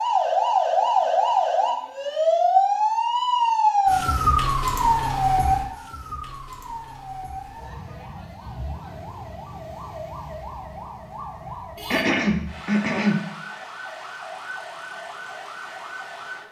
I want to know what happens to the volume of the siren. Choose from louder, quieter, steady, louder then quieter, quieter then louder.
quieter.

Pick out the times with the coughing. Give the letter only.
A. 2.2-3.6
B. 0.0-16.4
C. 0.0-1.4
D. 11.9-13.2
D.